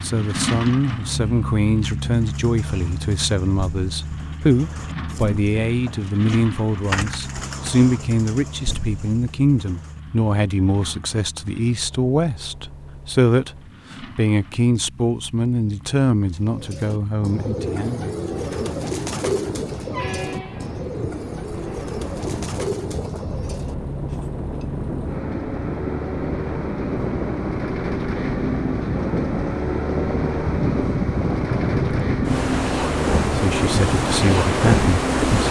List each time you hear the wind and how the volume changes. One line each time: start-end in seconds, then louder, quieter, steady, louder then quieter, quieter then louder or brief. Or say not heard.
17.2-35.4 louder.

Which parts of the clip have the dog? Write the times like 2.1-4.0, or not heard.
not heard.